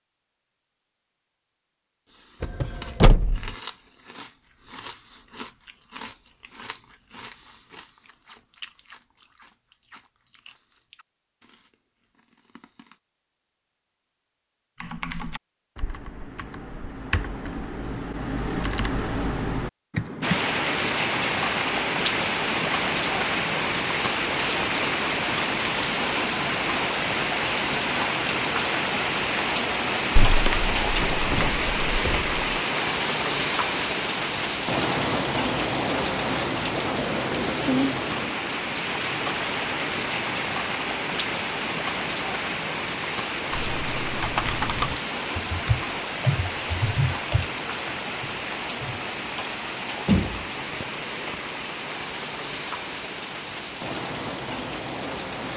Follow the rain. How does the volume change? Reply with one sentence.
The volume of the rain goes down.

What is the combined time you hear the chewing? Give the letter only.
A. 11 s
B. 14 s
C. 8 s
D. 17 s
A.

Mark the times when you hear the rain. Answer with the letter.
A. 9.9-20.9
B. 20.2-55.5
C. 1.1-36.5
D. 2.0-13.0
B.